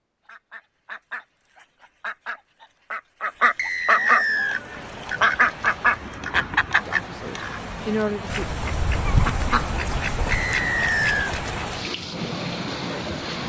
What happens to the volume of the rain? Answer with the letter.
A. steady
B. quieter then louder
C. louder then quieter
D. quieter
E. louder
E.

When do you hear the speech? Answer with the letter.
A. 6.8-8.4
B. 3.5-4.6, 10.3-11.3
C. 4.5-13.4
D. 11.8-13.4
A.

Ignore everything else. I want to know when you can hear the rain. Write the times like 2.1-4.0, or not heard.
4.5-13.4.